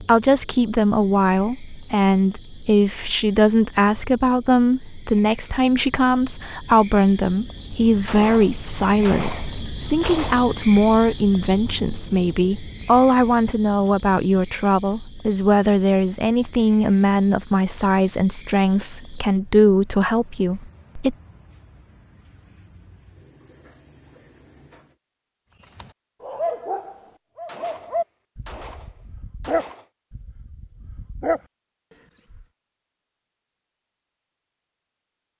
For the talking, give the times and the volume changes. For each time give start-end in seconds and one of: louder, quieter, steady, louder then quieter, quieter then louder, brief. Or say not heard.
0.0-21.1 steady.